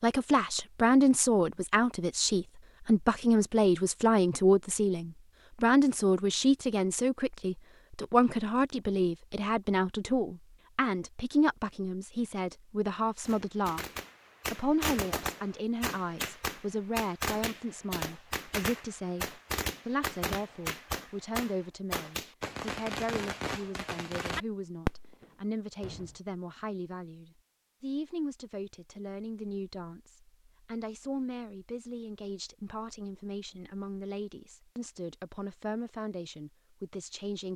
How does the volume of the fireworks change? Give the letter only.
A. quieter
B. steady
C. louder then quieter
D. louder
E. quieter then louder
B.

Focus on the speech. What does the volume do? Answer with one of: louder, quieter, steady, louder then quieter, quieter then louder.
quieter.